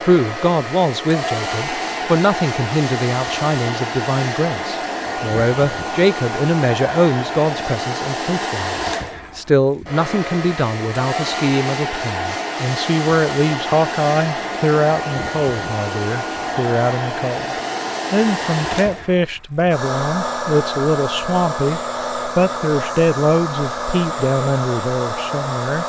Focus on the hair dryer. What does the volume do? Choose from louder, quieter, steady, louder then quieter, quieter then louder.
steady.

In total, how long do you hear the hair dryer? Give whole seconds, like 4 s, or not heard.
26 s.